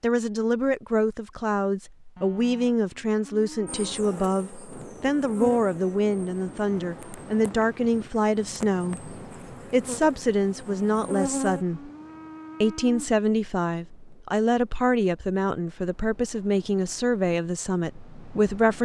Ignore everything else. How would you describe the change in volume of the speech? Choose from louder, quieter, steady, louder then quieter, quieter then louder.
steady.